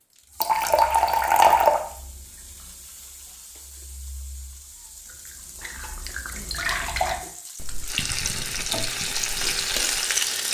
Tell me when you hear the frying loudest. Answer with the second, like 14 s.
10 s.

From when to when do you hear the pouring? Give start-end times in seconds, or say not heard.
0.4-1.8, 6.3-7.2.